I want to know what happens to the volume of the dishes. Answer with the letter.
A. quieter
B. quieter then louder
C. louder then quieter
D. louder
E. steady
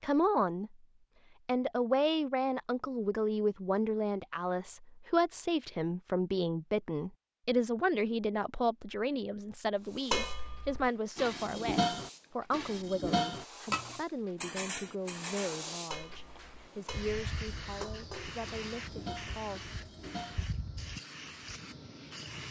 A.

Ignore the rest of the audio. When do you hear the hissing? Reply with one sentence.
The hissing can be heard from 9.8 to 22.4 s.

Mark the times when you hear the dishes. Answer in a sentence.
The dishes can be heard from 10.1 to 20.4 s.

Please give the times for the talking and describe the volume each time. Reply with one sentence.
The talking can be heard briefly from 0.0 to 0.8 s; and from 1.4 to 19.8 s, getting quieter.